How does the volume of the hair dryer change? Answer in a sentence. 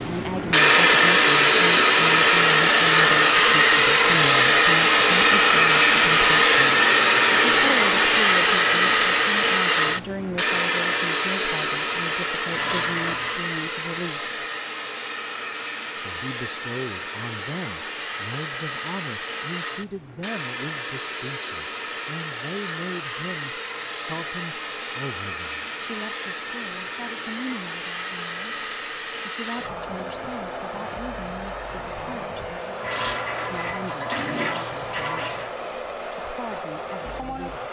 The volume of the hair dryer goes down.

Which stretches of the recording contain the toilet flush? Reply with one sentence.
You can hear the toilet flush from 12.5 to 13.4 s and from 32.8 to 35.5 s.